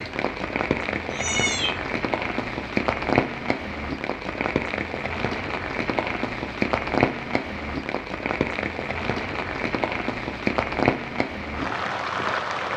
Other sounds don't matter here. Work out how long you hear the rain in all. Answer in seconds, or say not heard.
13 s.